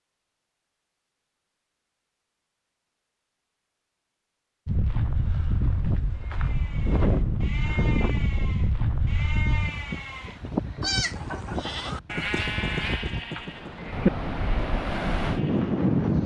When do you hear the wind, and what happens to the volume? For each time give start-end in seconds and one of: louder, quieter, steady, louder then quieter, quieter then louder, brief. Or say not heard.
4.7-16.2 quieter then louder.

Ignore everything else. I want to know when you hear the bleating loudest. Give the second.
14 s.